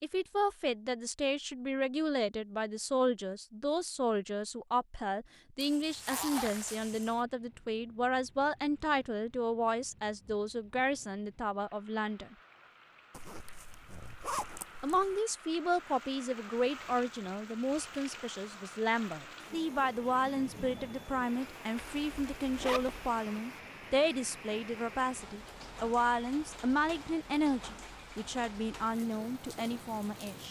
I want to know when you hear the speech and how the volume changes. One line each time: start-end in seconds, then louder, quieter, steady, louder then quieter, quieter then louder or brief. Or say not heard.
0.0-12.3 steady
14.8-30.4 steady.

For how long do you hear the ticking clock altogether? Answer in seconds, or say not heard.
not heard.